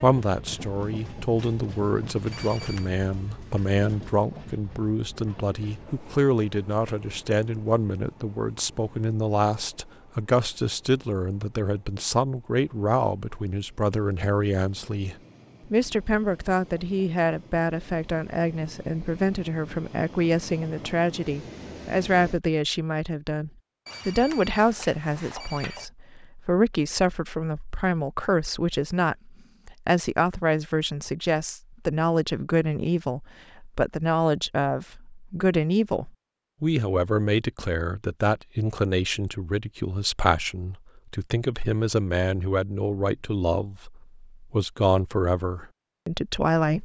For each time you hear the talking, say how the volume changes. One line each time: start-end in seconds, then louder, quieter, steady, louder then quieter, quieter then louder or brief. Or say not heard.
0.0-46.8 steady.